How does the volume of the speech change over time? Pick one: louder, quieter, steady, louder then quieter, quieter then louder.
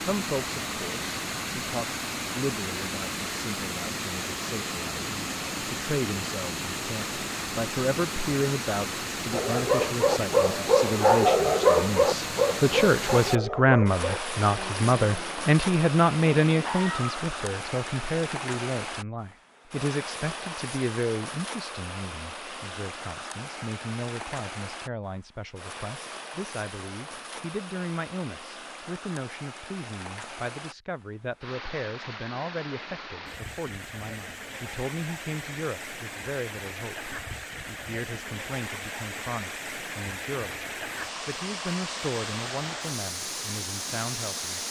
louder then quieter.